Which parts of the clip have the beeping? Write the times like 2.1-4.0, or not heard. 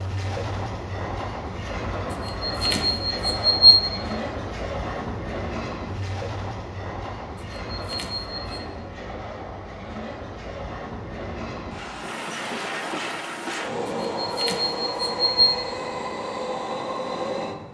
2.1-3.9, 7.3-8.6, 13.8-15.2.